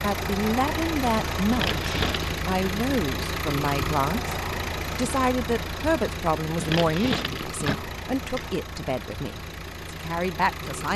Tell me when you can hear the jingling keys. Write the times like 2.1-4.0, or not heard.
1.4-2.4, 6.5-8.5.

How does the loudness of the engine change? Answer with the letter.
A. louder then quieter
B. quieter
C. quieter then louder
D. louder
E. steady
B.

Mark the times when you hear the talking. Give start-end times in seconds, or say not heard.
0.0-4.3, 5.0-10.9.